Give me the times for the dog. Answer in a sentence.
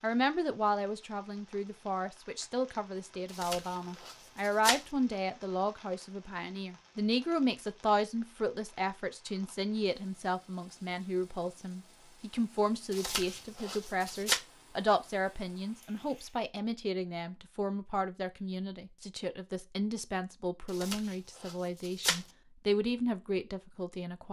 The dog can't be heard in this clip.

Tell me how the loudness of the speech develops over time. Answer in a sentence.
The loudness of the speech stays about the same.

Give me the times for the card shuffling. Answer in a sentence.
The card shuffling can be heard from 3.3 to 4.8 s, from 12.9 to 14.4 s and from 20.7 to 22.2 s.